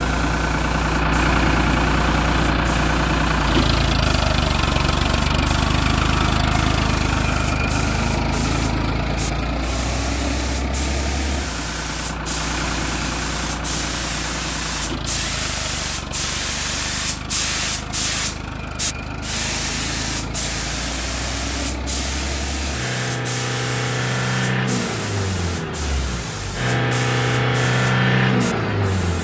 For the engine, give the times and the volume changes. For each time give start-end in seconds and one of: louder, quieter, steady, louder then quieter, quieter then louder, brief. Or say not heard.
0.0-29.2 quieter then louder.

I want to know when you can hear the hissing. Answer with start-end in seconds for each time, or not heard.
0.0-29.2.